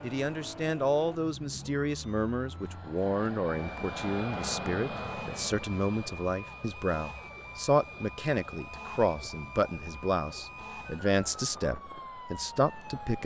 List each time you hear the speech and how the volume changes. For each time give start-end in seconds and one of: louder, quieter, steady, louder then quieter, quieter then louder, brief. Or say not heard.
0.0-13.2 steady.